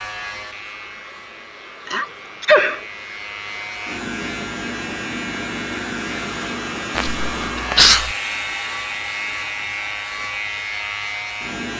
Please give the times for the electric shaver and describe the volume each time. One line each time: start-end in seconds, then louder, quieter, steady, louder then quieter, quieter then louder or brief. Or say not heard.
0.0-11.7 louder.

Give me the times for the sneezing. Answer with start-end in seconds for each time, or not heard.
1.9-2.8, 7.0-8.2.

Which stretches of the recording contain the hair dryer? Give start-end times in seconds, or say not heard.
0.0-11.6.